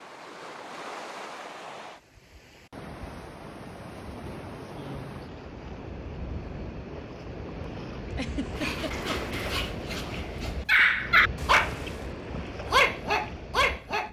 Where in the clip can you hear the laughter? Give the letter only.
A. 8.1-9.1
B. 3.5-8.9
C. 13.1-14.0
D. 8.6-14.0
A.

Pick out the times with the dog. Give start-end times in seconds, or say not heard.
8.6-14.0.